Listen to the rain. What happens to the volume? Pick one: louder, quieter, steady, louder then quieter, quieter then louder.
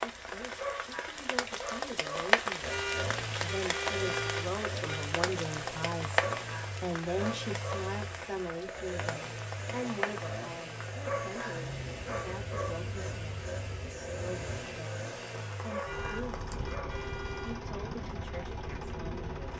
quieter.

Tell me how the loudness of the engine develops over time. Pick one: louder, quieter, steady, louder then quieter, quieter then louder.
steady.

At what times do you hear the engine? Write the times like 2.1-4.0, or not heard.
2.6-19.5.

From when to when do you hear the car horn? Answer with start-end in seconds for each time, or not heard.
2.6-5.1, 15.8-17.6.